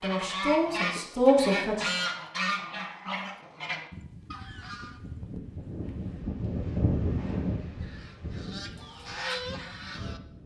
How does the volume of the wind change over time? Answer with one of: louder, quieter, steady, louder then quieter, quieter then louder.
louder then quieter.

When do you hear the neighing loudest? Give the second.
5 s.